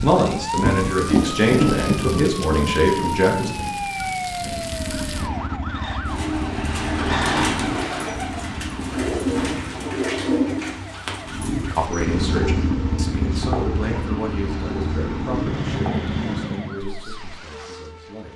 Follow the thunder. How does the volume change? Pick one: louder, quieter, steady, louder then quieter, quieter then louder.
quieter.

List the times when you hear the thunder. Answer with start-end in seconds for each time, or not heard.
0.6-4.6.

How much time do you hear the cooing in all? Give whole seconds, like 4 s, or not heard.
11 s.